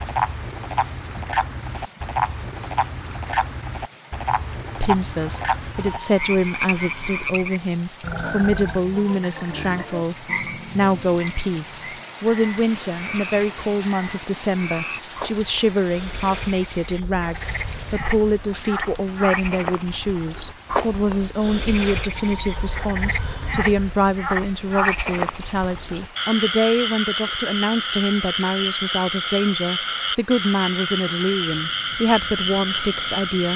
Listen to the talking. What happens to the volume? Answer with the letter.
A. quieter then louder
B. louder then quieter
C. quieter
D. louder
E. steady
E.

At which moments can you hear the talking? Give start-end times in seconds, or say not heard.
4.8-33.5.